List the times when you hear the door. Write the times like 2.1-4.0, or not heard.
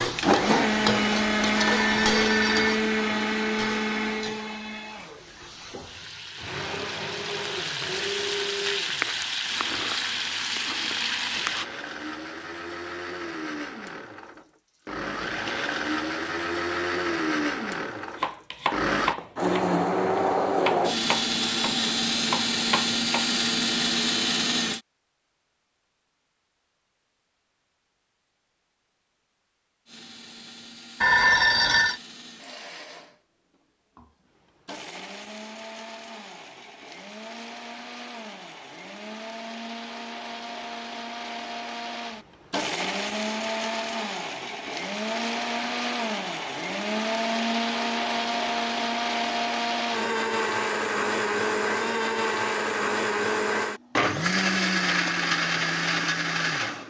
not heard.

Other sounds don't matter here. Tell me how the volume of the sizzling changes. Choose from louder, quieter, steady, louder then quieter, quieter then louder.
quieter then louder.